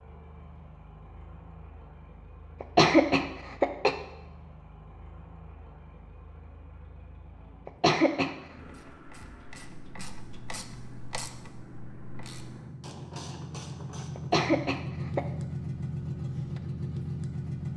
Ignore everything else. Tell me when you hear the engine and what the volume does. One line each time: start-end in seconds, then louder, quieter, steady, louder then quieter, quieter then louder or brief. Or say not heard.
0.0-17.7 louder.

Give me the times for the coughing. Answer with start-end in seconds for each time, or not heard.
2.6-4.0, 7.7-8.3, 14.2-15.2.